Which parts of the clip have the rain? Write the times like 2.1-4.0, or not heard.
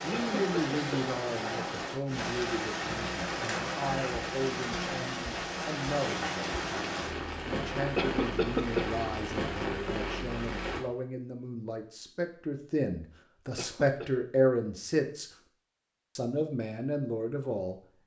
0.0-10.8.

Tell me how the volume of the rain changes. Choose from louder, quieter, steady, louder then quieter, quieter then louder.
steady.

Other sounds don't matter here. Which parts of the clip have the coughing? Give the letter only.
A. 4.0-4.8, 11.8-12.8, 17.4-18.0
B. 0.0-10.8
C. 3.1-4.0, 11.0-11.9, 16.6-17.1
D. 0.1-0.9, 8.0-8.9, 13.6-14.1
D.